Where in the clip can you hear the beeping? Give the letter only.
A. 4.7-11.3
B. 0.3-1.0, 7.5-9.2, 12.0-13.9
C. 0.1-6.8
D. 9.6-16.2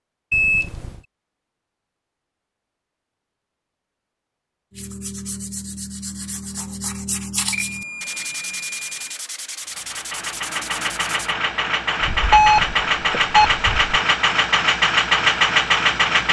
B.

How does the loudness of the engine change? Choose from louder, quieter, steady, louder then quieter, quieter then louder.
louder.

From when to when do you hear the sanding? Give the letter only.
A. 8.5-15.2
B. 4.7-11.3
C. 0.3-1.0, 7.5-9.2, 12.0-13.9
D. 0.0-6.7
B.